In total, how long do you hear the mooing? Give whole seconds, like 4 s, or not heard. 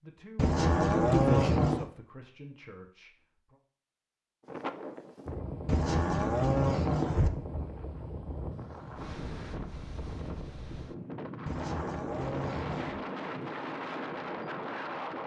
5 s.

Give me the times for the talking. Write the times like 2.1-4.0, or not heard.
0.0-3.6.